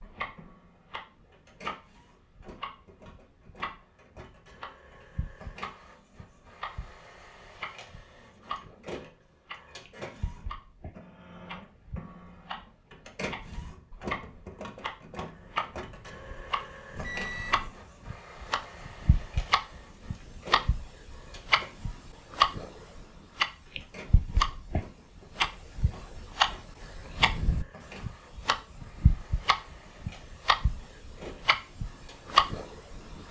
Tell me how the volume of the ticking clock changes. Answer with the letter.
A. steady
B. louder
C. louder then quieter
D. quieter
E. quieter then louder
B.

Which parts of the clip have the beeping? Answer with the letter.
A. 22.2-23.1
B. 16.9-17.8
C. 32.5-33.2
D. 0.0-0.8
B.